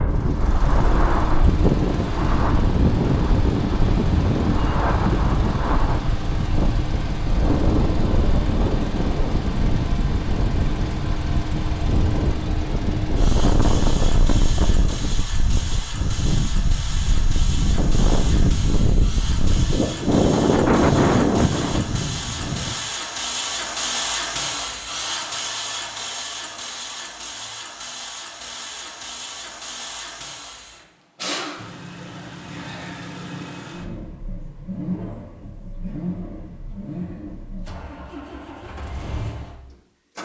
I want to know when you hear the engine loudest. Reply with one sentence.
The loudest moment of the engine is at 24 seconds.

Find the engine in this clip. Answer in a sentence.
You can hear the engine from 0.0 to 40.1 s.